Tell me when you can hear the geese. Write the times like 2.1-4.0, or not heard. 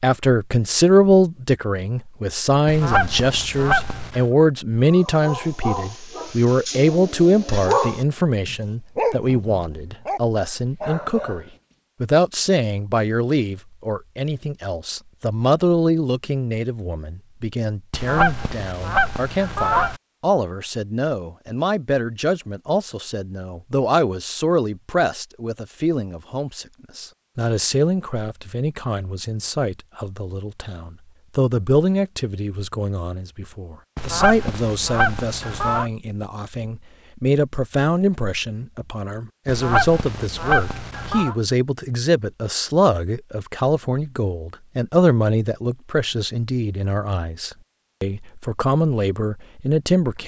2.6-4.2, 17.9-20.0, 34.0-35.9, 39.5-41.4.